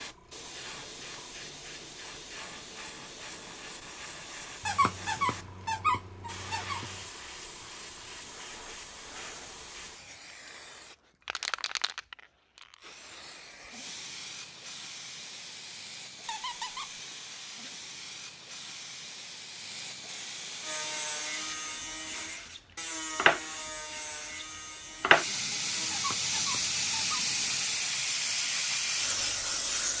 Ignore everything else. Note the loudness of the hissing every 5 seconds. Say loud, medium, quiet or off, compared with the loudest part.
quiet, quiet, quiet, quiet, medium, loud.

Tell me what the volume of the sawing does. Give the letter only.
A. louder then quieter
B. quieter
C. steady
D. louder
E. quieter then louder
B.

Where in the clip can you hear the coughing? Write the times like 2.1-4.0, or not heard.
not heard.